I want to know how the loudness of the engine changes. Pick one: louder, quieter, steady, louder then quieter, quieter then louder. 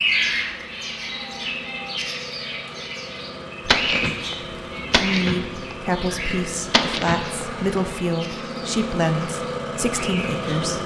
louder.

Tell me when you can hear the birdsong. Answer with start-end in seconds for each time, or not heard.
0.0-10.7.